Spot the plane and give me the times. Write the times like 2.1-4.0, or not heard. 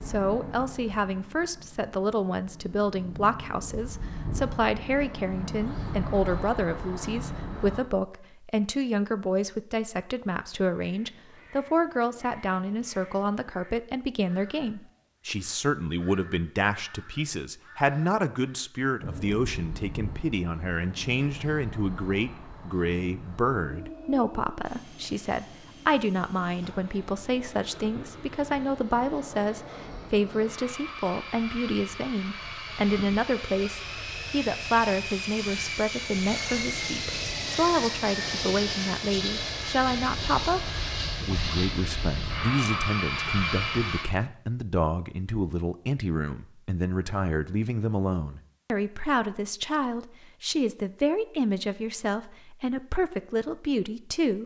0.0-7.8, 19.0-44.0.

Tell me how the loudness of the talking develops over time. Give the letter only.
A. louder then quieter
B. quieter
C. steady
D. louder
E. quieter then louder
C.